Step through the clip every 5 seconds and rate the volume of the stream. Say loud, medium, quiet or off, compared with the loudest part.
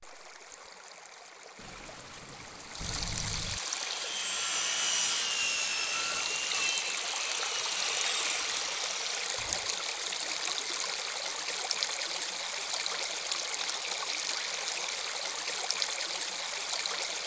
medium, loud, loud, loud.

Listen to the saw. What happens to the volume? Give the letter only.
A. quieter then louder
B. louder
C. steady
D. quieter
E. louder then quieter
D.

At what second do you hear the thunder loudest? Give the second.
3 s.